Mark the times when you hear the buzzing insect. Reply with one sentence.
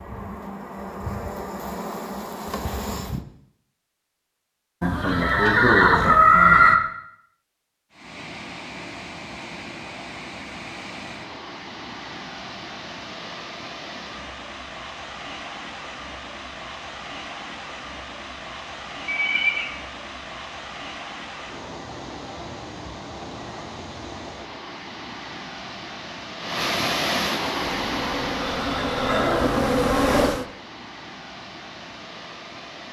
You can hear the buzzing insect from 0.0 to 3.2 s and from 27.6 to 30.4 s.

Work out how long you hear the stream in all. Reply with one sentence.
You can hear the stream for 25 seconds altogether.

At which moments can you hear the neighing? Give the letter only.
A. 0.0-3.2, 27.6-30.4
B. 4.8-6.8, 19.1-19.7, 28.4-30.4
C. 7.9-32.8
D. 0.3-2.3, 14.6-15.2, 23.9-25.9
B.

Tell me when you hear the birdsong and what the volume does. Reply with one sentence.
The birdsong can't be heard in this clip.